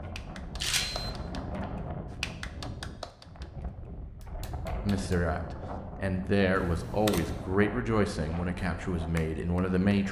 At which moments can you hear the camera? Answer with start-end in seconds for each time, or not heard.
0.6-1.1, 6.5-7.5.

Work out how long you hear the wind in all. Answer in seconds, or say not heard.
10 s.